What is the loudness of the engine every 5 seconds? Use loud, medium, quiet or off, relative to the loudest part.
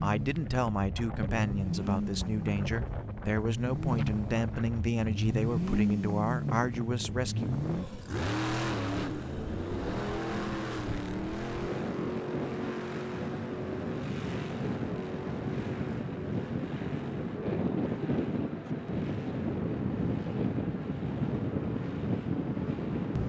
loud, loud, loud, medium, medium.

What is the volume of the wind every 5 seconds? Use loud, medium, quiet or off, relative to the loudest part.
medium, medium, medium, loud, loud.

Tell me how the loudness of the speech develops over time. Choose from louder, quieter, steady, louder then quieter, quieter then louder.
steady.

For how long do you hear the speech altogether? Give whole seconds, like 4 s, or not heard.
8 s.